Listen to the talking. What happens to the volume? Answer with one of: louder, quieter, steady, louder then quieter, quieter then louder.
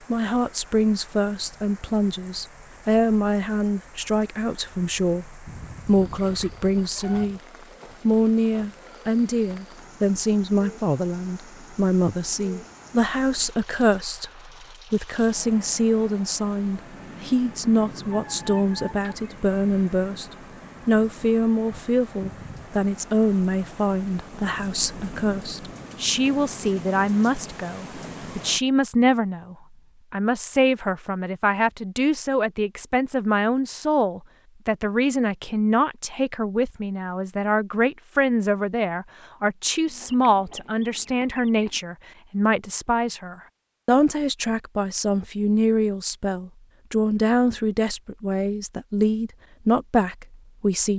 steady.